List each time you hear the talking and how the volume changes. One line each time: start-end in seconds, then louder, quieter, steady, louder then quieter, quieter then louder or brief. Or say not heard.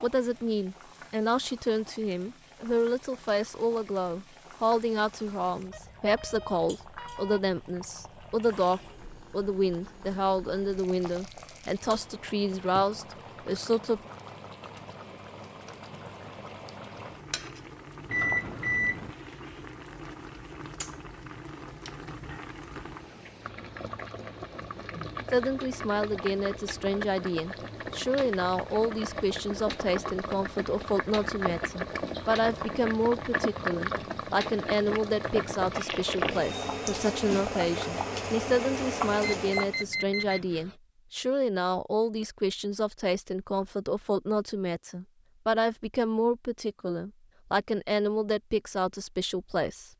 0.0-14.0 steady
25.3-49.9 steady.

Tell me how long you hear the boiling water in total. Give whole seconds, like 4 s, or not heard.
40 s.